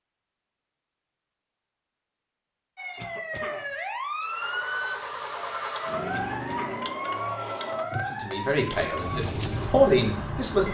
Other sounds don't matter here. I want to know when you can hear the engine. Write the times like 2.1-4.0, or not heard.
4.2-10.6.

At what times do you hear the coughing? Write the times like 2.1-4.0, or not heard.
3.0-3.8, 6.1-6.9.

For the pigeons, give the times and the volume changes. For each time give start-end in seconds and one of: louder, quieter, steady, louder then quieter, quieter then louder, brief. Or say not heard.
not heard.